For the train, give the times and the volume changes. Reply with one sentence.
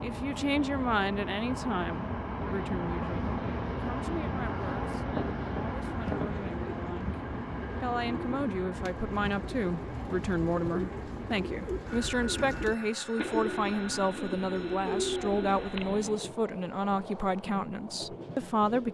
The train can be heard from 0.0 to 18.8 s, getting quieter.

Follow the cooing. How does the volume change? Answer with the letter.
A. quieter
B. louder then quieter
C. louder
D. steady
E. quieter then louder
C.